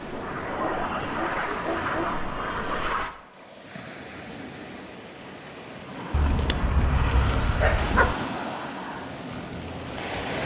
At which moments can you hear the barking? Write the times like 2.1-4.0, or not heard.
0.6-2.2, 6.1-8.2.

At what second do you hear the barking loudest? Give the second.
8 s.